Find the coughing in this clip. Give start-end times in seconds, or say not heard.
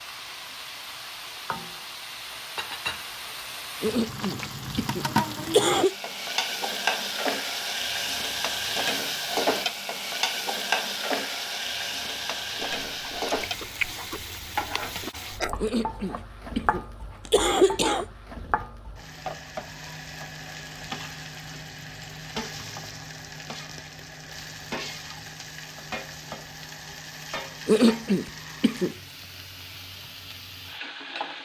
3.8-6.0, 15.6-18.1, 27.6-28.9.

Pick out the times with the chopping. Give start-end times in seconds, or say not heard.
not heard.